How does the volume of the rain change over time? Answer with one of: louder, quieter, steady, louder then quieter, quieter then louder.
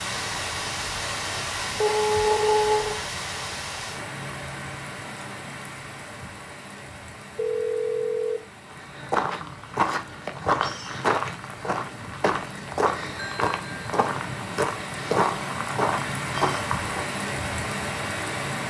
quieter then louder.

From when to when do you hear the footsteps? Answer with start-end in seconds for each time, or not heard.
8.7-17.1.